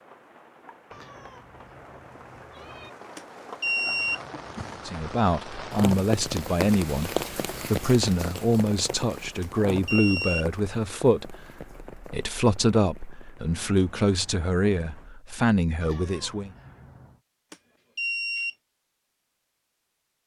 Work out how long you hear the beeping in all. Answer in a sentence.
The beeping can be heard for 3 seconds in total.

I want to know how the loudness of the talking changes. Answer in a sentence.
The volume of the talking stays about the same.